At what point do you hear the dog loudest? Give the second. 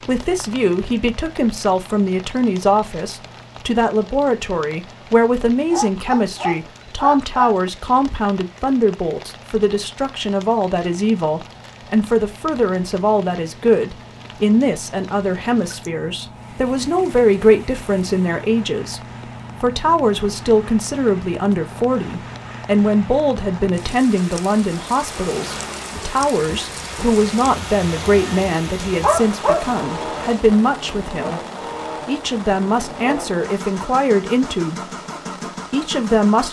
29 s.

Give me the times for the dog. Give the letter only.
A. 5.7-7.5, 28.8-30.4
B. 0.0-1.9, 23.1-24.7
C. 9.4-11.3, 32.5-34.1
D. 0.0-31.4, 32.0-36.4
A.